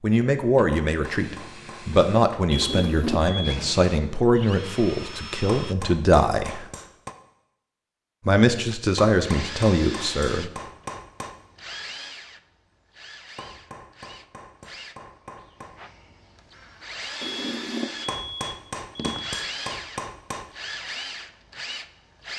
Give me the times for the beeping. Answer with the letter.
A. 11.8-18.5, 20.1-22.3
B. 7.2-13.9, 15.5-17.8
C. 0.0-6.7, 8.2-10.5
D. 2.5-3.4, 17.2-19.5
D.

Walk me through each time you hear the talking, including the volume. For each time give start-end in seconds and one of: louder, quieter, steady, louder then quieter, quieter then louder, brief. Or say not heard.
0.0-6.7 steady
8.2-10.5 brief.